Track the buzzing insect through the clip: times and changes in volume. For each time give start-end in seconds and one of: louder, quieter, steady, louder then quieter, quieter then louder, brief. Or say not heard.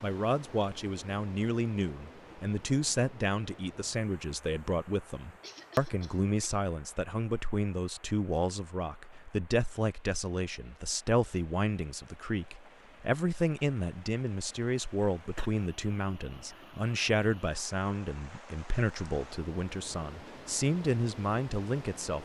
not heard.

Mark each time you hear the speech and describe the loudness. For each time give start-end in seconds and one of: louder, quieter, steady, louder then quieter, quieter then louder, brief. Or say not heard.
0.0-22.2 steady.